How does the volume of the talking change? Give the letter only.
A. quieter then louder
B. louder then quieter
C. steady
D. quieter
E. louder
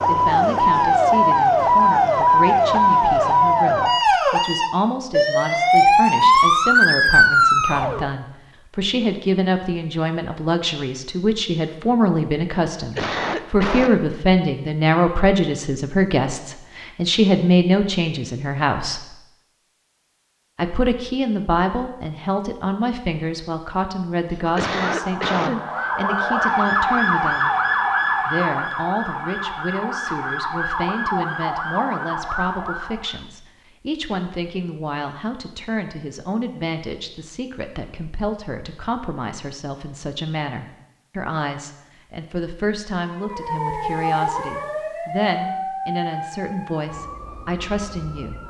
B.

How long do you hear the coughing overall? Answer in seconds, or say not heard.
3 s.